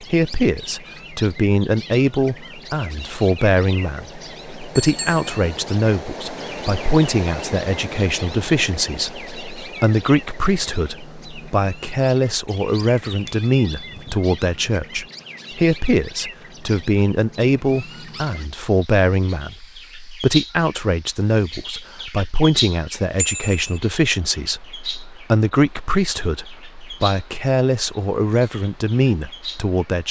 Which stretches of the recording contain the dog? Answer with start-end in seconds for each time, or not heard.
not heard.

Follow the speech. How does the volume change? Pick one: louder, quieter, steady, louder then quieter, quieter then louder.
steady.